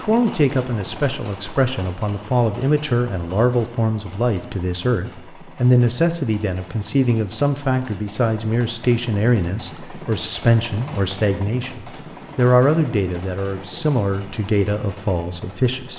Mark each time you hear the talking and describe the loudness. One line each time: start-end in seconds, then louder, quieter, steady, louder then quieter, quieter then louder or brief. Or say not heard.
0.0-15.9 steady.